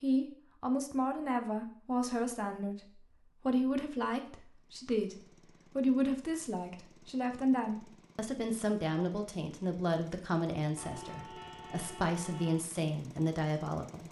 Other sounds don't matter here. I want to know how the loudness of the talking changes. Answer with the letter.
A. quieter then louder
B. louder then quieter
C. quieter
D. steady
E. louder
D.